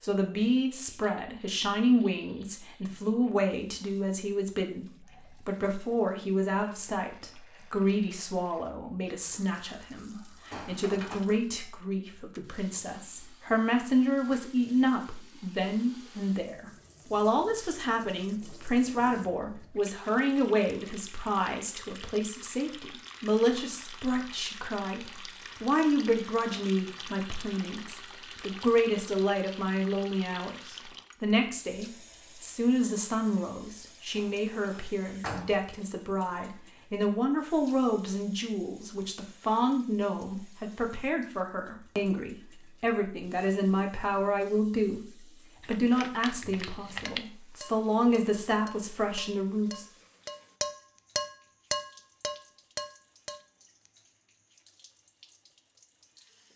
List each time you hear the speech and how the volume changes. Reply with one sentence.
You can hear the speech from 0.0 to 49.9 s, at a steady volume.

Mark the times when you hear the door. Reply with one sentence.
You can hear the door from 10.5 to 11.2 s and from 34.1 to 35.6 s.